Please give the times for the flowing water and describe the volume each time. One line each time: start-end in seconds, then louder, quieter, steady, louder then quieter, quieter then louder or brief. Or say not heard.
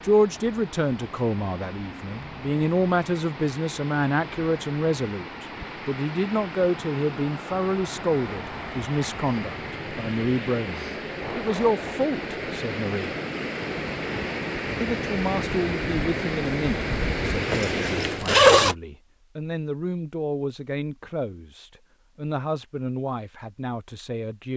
0.0-18.3 louder.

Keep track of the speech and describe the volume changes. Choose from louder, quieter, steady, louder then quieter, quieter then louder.
quieter.